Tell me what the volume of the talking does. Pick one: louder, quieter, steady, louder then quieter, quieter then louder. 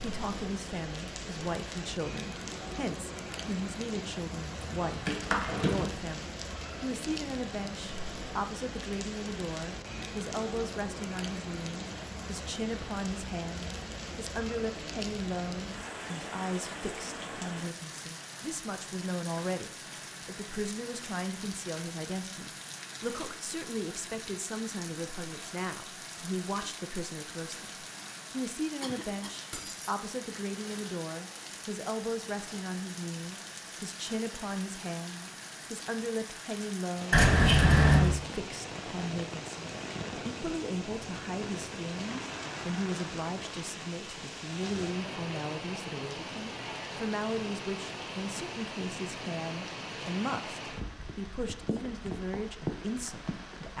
steady.